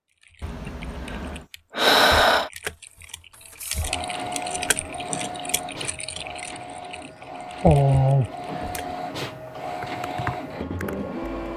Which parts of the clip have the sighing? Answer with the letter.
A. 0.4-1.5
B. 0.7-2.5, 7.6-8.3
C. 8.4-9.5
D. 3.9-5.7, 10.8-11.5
B.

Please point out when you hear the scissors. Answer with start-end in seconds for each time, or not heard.
0.4-1.5.